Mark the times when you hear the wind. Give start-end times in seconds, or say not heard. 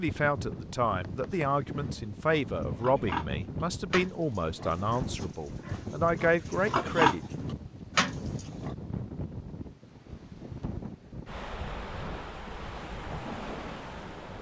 0.0-14.3.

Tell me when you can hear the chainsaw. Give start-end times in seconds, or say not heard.
not heard.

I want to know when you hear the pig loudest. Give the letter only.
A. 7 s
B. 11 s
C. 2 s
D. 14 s
A.